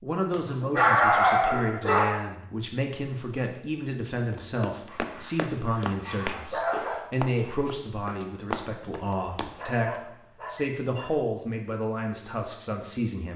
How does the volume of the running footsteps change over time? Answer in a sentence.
The loudness of the running footsteps goes down, then up.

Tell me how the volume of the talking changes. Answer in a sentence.
The loudness of the talking stays about the same.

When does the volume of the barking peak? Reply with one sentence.
The loudest moment of the barking is at 1 second.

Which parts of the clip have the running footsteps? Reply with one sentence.
You can hear the running footsteps from 4.2 to 9.7 s.